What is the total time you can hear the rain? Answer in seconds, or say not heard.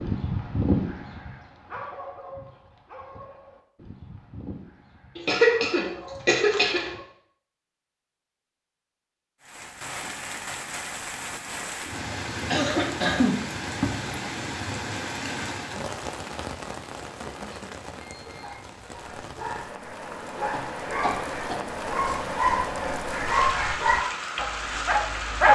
16 s.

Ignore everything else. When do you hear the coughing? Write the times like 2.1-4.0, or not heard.
5.2-6.9, 12.4-13.4, 20.5-21.8.